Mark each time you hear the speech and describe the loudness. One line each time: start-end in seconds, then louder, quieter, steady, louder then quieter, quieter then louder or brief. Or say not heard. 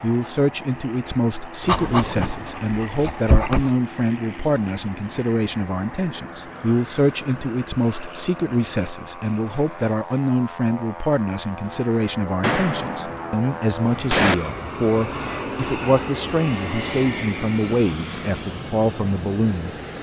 0.0-19.8 steady.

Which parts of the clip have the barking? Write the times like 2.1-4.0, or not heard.
1.6-3.7.